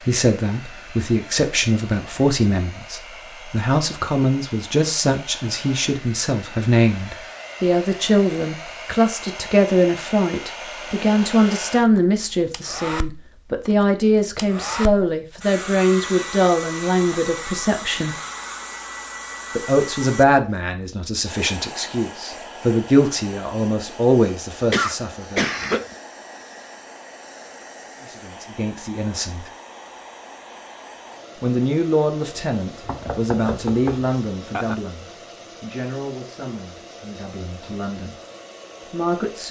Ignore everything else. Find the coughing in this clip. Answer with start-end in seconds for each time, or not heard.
24.7-25.9.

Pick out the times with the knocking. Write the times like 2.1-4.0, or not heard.
32.8-34.8.